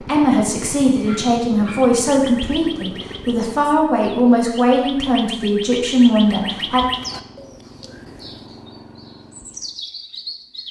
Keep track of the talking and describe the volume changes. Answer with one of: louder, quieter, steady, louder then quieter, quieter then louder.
steady.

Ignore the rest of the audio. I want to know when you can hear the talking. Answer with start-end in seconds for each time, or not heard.
0.0-6.8.